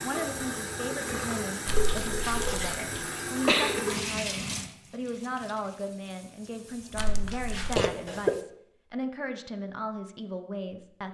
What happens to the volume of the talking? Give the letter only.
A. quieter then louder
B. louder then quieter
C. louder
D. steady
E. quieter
D.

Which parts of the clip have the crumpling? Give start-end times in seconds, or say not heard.
1.6-2.8, 7.0-7.8.